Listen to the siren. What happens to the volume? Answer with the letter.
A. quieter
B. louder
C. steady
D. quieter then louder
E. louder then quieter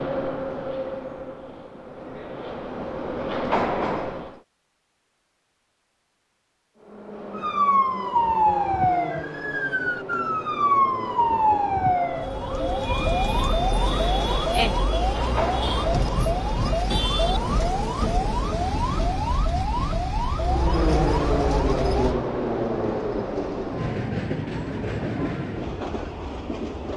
A.